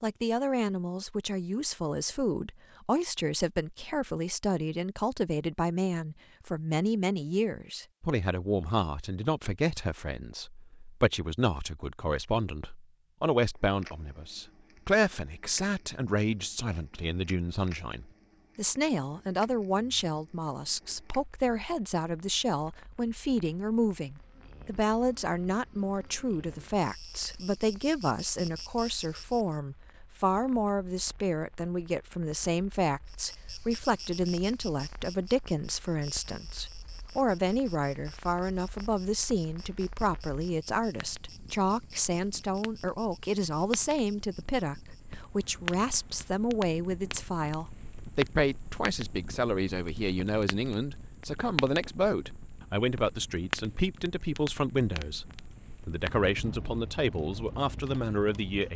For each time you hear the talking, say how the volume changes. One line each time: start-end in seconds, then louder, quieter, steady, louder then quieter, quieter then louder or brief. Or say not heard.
0.0-58.7 steady.